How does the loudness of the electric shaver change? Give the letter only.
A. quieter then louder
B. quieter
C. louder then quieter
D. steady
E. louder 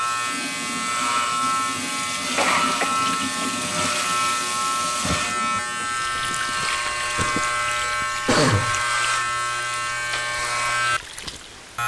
D.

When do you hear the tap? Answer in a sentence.
You can hear the tap from 0.0 to 11.8 s.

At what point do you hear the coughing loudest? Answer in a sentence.
The volume of the coughing peaks at 8 seconds.